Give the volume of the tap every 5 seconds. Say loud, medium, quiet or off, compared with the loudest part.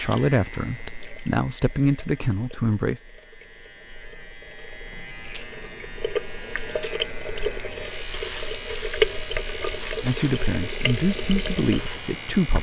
quiet, loud, medium.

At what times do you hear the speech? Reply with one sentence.
The speech can be heard from 0.0 to 3.0 s and from 10.0 to 12.5 s.